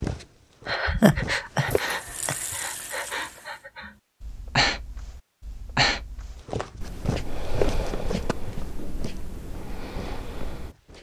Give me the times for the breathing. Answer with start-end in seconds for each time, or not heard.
0.7-10.7.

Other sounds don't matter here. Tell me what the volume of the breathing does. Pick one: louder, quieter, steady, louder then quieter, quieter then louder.
quieter.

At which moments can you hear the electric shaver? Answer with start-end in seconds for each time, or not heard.
not heard.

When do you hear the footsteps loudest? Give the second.
8 s.